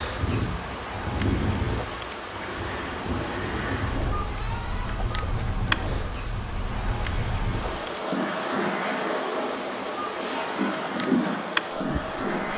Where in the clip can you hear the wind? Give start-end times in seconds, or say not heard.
0.0-12.5.